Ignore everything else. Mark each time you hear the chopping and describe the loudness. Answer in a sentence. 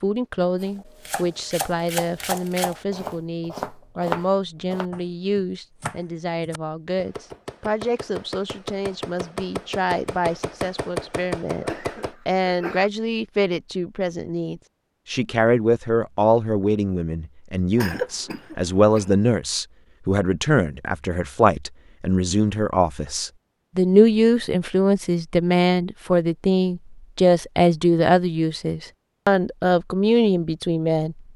The chopping can be heard from 0.6 to 12.2 s, getting quieter then louder.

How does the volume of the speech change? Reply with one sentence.
The loudness of the speech goes up.